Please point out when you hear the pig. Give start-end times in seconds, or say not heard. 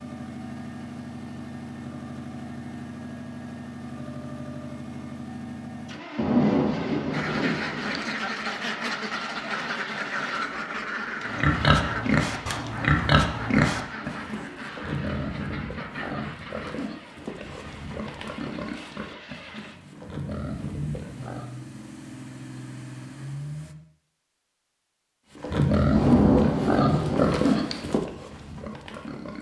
11.2-21.5, 25.4-29.3.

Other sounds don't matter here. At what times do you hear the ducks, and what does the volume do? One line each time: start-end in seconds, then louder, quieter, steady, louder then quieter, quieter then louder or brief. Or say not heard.
7.1-16.9 quieter.